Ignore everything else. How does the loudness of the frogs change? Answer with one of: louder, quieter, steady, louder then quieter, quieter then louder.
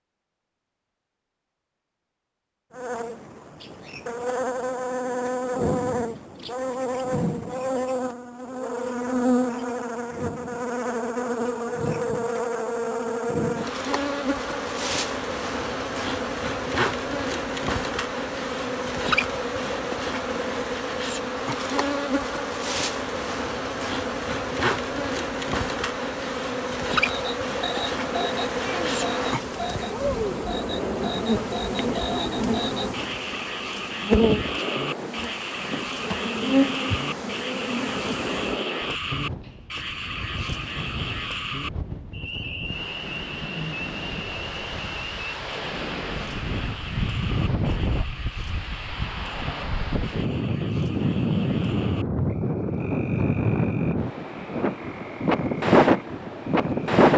quieter.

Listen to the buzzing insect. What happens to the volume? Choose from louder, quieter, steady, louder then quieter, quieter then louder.
steady.